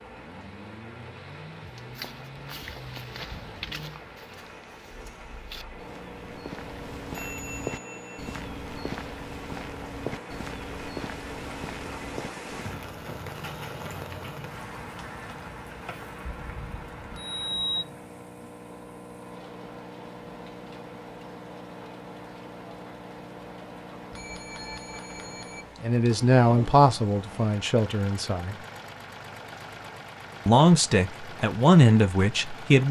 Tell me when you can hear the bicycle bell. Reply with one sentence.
You can hear the bicycle bell from 7.1 to 8.3 s, from 16.2 to 17.9 s and from 24.1 to 25.6 s.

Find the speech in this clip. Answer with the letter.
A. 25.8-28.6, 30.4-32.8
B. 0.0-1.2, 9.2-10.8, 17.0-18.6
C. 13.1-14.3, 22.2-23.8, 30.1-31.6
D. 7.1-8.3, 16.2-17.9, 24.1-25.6
A.